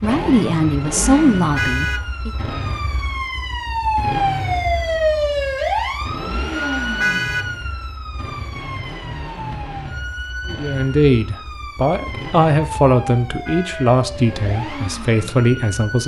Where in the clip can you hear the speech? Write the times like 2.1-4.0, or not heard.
0.0-2.3, 10.4-16.0.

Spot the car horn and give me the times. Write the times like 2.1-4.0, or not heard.
1.6-2.0, 7.0-7.5, 13.4-13.9.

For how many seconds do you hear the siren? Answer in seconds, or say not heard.
16 s.